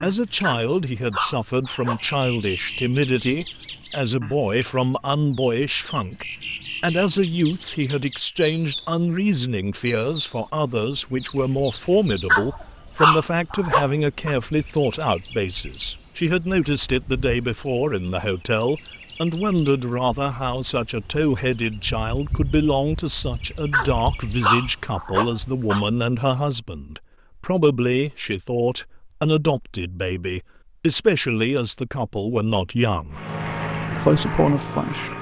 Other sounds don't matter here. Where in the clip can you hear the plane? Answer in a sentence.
You can hear the plane from 33.1 to 35.1 s.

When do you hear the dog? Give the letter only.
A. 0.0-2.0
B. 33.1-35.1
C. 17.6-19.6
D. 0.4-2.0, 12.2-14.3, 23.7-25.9
D.